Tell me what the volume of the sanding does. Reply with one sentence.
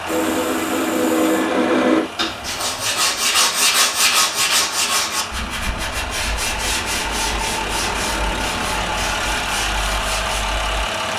The loudness of the sanding goes down.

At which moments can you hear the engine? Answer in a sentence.
The engine can be heard from 0.0 to 11.1 s.